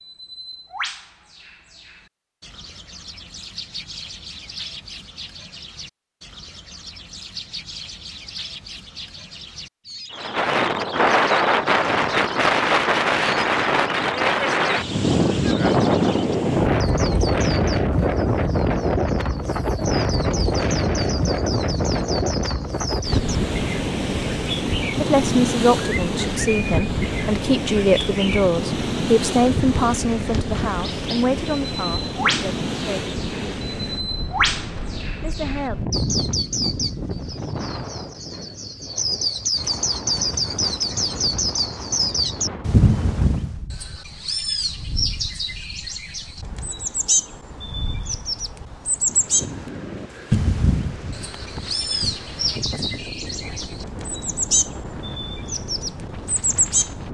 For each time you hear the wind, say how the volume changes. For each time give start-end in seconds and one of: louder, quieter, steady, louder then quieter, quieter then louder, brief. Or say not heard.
10.2-57.0 quieter.